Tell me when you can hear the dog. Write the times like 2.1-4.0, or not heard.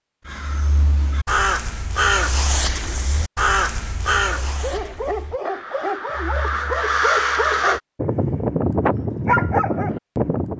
4.4-10.5.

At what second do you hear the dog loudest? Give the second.
9 s.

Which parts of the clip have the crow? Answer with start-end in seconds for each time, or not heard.
0.2-7.8.